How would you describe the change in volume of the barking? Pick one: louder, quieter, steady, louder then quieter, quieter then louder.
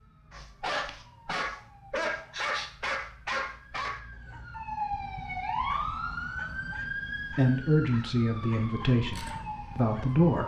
quieter.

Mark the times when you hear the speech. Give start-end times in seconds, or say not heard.
7.3-10.4.